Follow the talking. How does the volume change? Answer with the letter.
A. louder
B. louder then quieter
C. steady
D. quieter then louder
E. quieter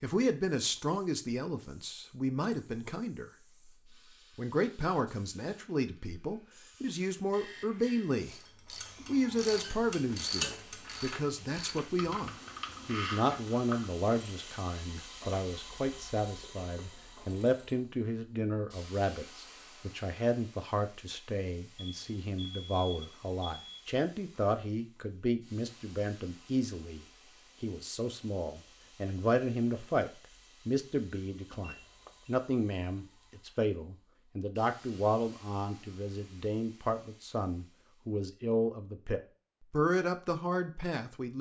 C.